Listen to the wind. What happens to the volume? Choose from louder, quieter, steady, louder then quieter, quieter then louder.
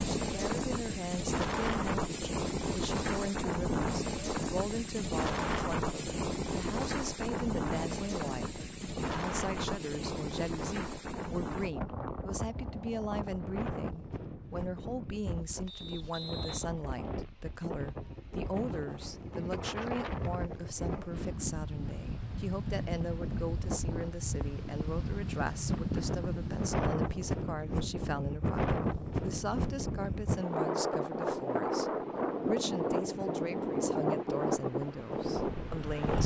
quieter then louder.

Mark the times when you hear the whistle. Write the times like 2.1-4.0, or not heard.
15.7-16.6.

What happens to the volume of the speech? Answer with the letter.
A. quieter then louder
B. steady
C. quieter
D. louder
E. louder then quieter
B.